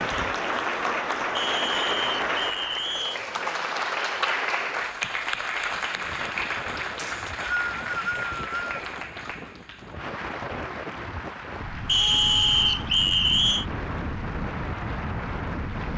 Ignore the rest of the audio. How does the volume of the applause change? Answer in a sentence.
The loudness of the applause goes down.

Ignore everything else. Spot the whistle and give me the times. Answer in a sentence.
You can hear the whistle from 1.4 to 3.2 s, from 7.0 to 8.8 s and from 11.8 to 13.7 s.